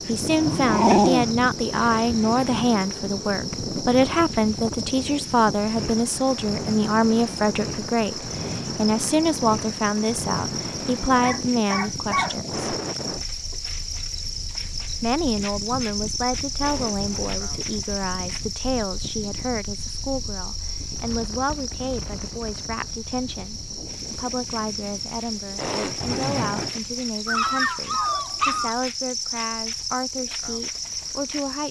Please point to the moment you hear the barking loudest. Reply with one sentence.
The volume of the barking peaks at 1 second.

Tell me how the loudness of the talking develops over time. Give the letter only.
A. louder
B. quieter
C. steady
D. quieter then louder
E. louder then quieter
B.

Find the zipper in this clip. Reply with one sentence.
The zipper can be heard from 1.7 to 3.0 s, from 16.6 to 17.4 s and from 25.6 to 26.8 s.